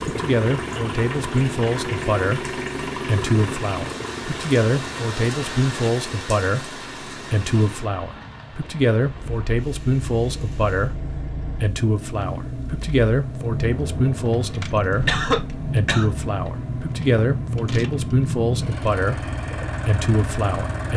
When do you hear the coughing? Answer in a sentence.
You can hear the coughing from 14.9 to 16.1 s.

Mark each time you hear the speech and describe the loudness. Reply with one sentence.
The speech can be heard from 0.0 to 20.9 s, at a steady volume.